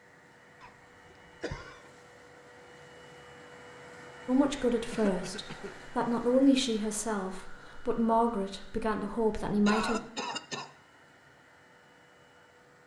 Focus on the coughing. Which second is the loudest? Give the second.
10 s.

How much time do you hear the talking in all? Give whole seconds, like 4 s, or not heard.
6 s.